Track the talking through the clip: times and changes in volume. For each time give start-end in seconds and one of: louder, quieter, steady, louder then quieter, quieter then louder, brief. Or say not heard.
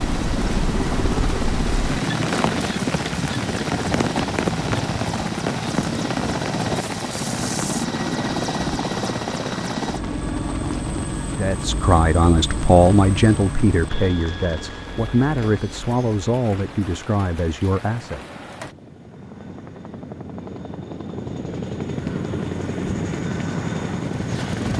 11.3-18.2 quieter.